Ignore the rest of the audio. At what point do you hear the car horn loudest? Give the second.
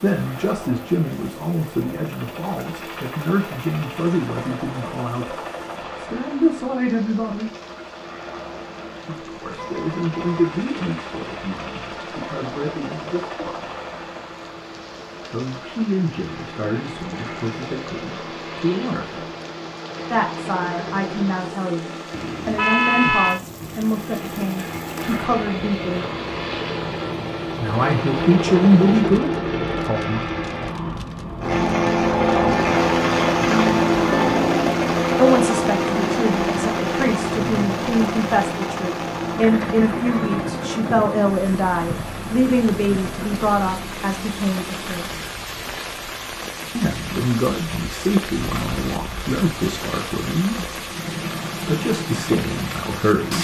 23 s.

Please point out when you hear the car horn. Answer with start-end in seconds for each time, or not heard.
9.6-10.6, 22.1-23.4, 40.0-40.7.